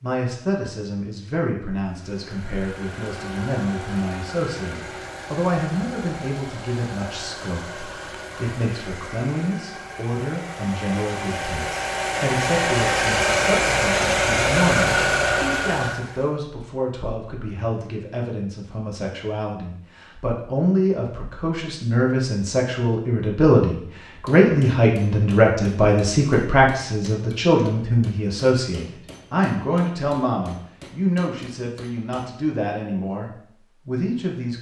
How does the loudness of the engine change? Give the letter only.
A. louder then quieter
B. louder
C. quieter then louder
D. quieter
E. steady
B.